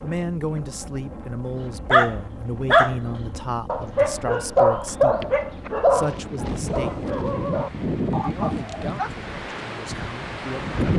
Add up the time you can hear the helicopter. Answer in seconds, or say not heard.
not heard.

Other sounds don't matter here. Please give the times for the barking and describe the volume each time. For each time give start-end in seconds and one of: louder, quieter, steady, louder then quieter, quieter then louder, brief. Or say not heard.
1.8-9.3 quieter.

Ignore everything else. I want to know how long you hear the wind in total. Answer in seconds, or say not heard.
11 s.